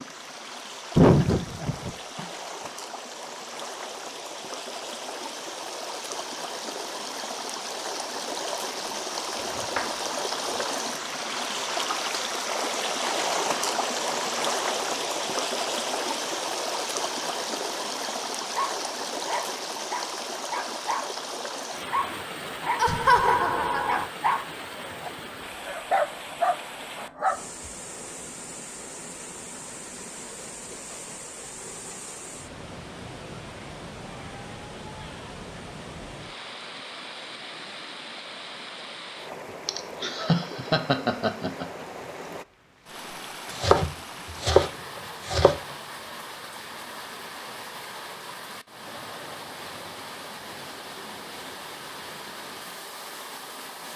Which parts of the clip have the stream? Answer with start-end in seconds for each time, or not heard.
0.0-53.9.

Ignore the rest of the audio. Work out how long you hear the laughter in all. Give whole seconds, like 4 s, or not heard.
5 s.